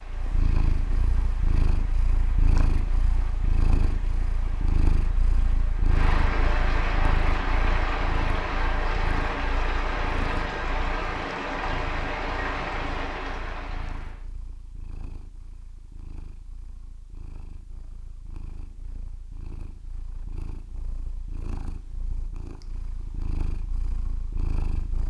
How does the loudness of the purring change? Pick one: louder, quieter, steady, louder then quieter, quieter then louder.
quieter then louder.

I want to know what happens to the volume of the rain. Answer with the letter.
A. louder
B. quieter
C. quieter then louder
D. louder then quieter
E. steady
A.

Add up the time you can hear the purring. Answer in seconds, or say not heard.
25 s.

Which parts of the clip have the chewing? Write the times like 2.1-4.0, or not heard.
not heard.